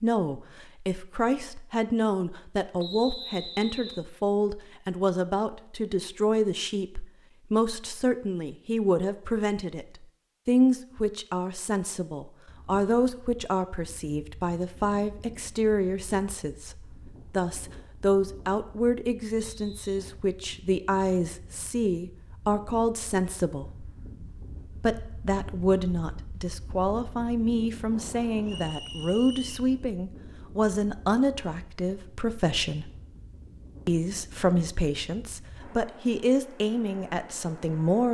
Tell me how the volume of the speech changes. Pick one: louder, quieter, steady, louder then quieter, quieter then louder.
steady.